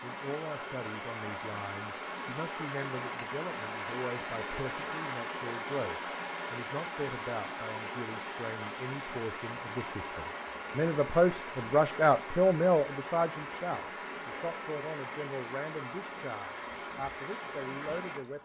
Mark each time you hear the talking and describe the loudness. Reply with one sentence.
The talking can be heard from 0.0 to 18.4 s, getting louder then quieter.